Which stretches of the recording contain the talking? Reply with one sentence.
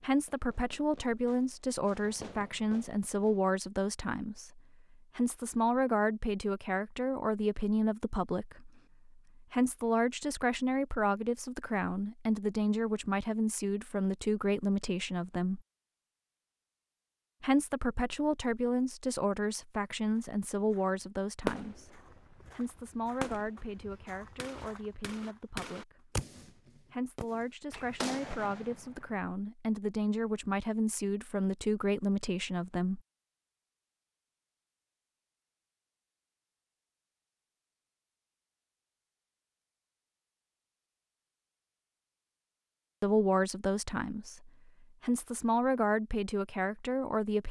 You can hear the talking from 0.0 to 15.6 s, from 17.4 to 33.0 s and from 43.0 to 47.4 s.